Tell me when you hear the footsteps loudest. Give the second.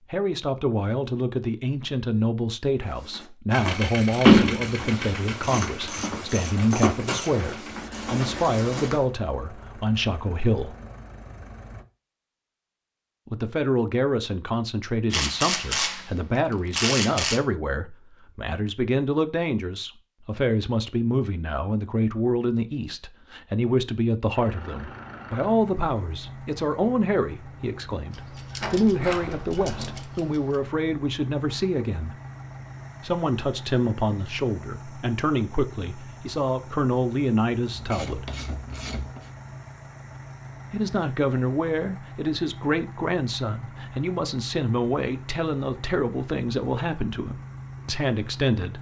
7 s.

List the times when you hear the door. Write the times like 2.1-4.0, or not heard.
4.2-5.7, 28.6-30.0.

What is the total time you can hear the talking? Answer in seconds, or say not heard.
43 s.